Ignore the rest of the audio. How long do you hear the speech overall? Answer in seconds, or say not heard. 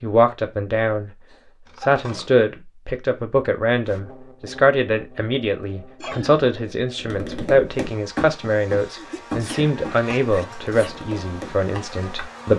12 s.